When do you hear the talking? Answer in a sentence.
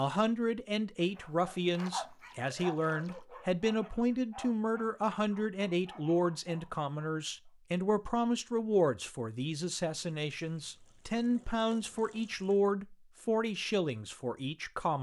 The talking can be heard from 0.0 to 14.9 s.